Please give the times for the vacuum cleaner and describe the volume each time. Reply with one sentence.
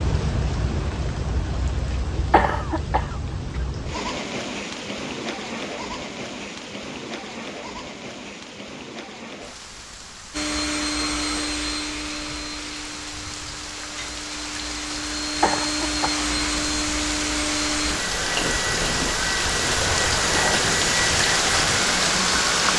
You can hear the vacuum cleaner from 10.3 to 22.7 s, getting quieter then louder.